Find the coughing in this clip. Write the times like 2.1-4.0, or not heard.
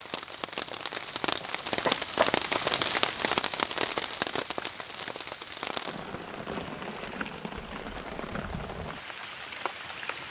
1.4-2.9.